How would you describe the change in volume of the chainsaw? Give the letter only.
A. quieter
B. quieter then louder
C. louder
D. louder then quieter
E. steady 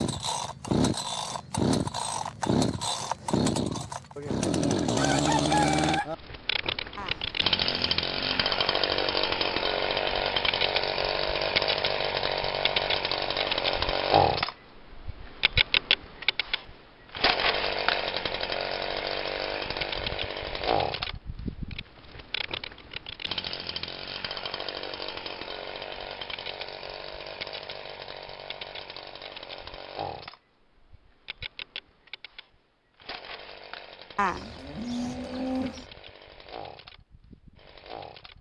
A.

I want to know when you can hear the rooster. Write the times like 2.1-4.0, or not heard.
4.2-6.2.